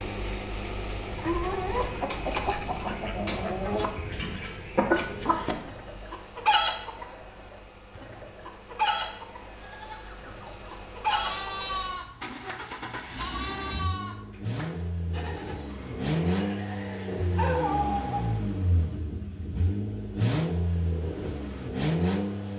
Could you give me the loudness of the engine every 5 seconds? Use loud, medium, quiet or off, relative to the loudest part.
medium, quiet, medium, loud, loud.